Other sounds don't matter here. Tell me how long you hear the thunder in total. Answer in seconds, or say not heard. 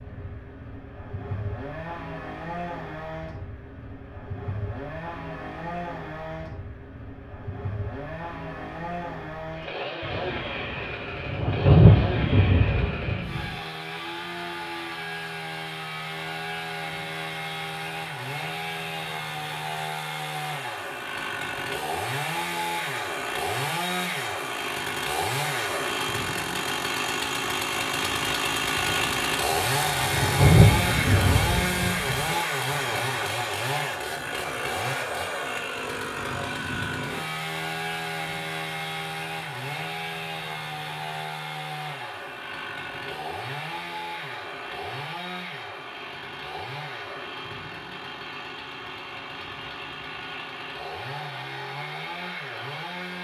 7 s.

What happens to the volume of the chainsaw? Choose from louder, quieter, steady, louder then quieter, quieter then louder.
louder then quieter.